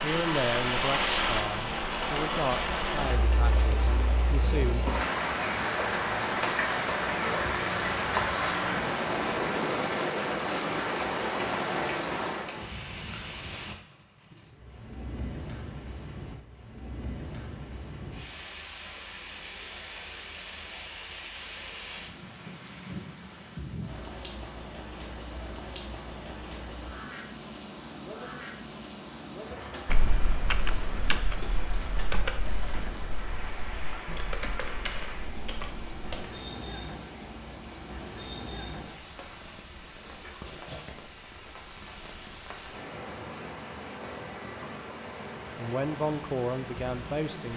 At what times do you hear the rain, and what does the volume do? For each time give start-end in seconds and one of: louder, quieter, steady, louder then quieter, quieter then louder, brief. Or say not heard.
0.0-47.5 quieter.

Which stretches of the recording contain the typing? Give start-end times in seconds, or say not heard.
29.9-36.3.